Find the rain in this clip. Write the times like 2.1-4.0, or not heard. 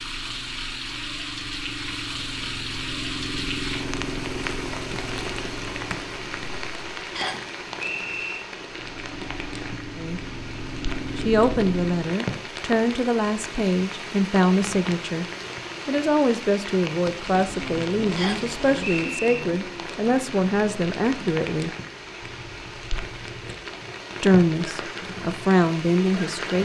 0.0-26.6.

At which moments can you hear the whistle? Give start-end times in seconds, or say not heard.
7.2-8.4, 18.1-19.4.